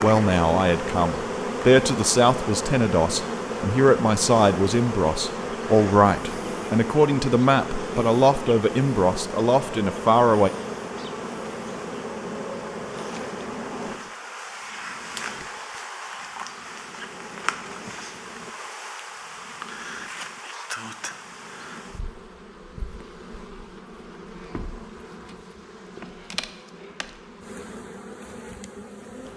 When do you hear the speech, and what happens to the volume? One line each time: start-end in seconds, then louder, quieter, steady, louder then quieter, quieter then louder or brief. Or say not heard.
0.0-10.5 steady.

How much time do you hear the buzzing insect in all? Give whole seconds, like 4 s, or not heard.
29 s.